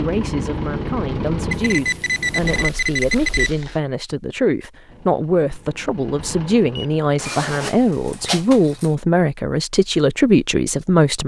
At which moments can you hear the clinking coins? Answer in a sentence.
The clinking coins can't be heard in this clip.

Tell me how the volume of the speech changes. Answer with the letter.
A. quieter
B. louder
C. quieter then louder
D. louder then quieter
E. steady
B.